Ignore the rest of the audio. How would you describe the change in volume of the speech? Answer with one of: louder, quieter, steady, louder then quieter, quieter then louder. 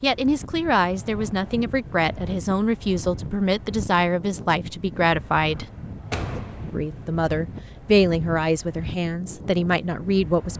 steady.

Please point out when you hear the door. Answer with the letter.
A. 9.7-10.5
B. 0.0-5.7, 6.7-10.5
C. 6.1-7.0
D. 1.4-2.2
C.